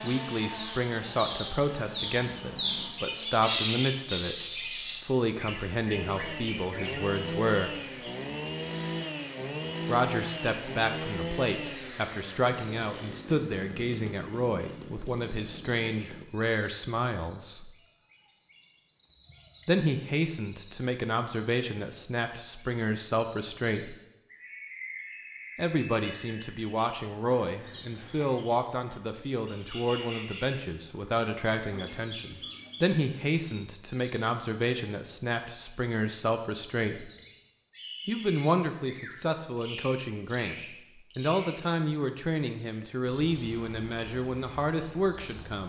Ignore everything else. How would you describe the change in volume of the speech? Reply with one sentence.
The volume of the speech stays about the same.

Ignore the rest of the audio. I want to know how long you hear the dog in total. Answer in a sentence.
The dog can't be heard in this clip.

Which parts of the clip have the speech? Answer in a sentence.
You can hear the speech from 0.0 to 7.8 s, from 9.8 to 17.7 s, from 19.6 to 23.9 s, from 25.6 to 37.1 s and from 38.0 to 45.6 s.